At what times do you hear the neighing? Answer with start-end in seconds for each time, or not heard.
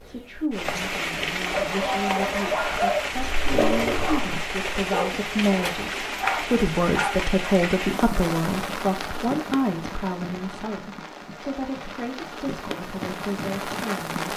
not heard.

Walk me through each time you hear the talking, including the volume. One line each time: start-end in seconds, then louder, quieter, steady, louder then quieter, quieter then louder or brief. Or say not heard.
0.0-14.3 louder then quieter.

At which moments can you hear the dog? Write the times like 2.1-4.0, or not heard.
1.4-7.3.